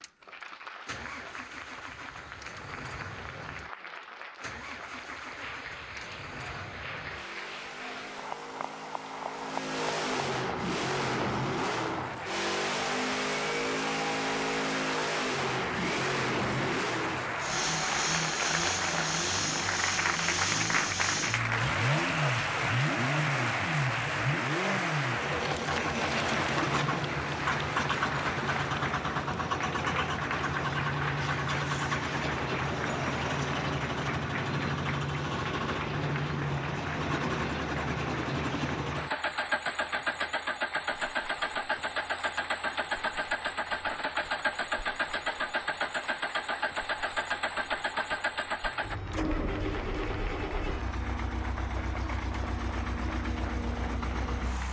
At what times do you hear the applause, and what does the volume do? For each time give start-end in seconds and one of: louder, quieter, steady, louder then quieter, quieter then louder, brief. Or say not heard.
0.0-54.6 louder then quieter.